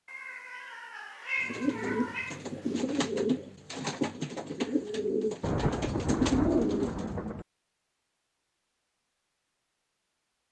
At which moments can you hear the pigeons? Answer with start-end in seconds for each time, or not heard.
1.4-7.3.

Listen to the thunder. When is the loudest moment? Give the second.
6 s.